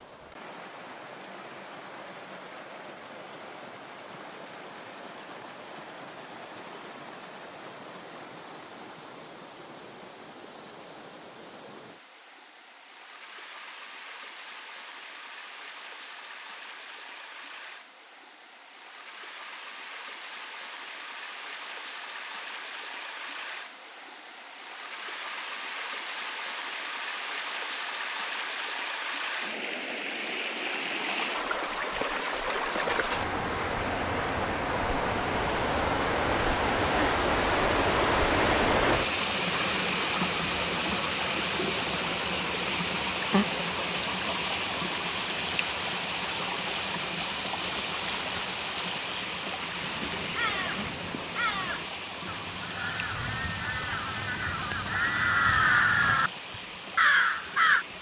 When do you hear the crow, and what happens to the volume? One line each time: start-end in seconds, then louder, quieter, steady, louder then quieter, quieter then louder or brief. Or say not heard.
49.8-56.3 louder
57.0-57.9 brief.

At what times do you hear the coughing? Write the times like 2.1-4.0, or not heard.
not heard.